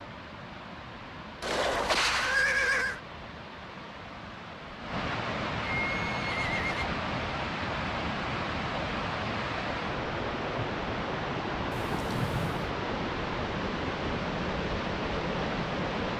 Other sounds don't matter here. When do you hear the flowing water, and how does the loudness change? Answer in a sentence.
The flowing water can be heard from 0.0 to 16.1 s, getting louder.